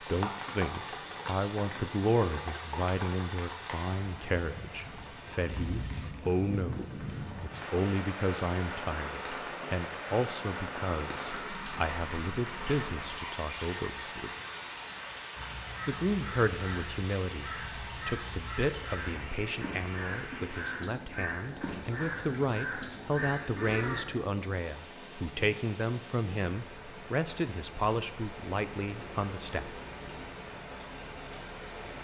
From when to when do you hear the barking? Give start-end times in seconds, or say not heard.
not heard.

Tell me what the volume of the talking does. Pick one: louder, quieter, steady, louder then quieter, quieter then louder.
steady.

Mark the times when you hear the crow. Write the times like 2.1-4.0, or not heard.
15.3-24.1.